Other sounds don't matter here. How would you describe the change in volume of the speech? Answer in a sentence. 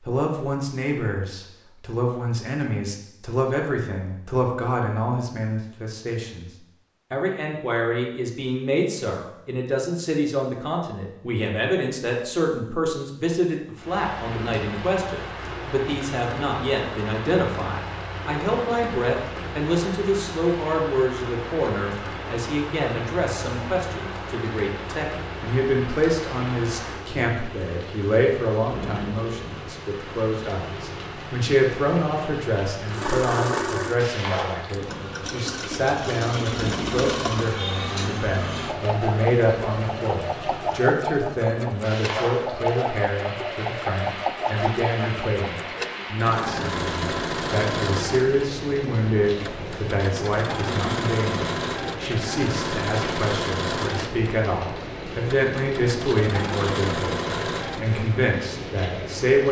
The volume of the speech stays about the same.